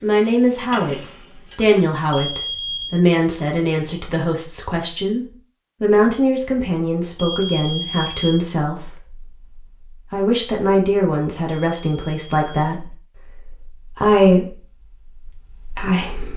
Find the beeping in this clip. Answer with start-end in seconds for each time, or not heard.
2.1-2.9, 7.2-8.3, 11.5-12.7.